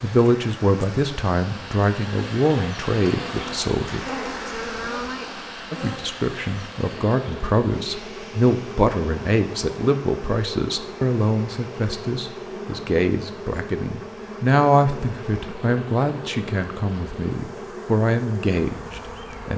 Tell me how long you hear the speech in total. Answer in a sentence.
The speech can be heard for 18 seconds in total.